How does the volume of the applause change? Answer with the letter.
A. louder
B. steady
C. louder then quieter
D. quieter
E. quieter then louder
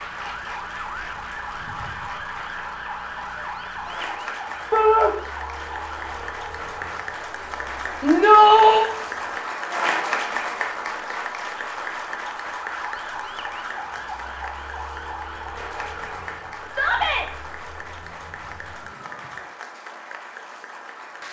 C.